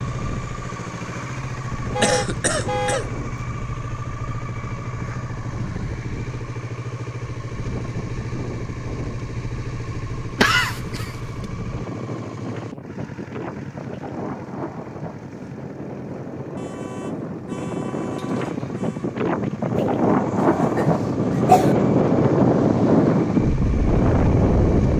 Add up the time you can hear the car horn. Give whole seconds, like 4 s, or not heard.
4 s.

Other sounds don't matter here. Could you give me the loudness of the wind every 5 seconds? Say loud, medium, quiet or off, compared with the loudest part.
quiet, quiet, quiet, medium, loud.